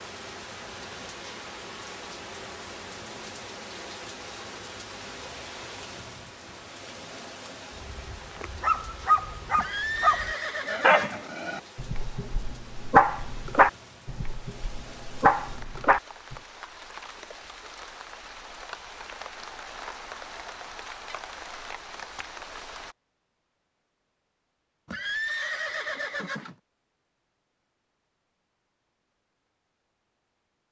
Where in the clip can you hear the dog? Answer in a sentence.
You can hear the dog from 7.8 to 16.4 s.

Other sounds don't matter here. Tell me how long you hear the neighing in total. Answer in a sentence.
You can hear the neighing for 3 seconds altogether.